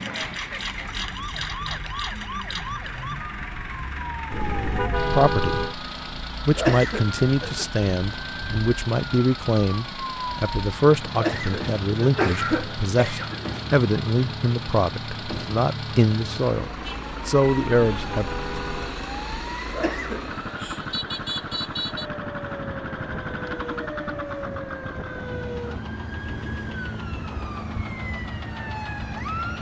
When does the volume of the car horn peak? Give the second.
5 s.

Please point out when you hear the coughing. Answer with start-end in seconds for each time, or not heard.
6.5-7.7, 11.2-13.6, 19.7-20.4.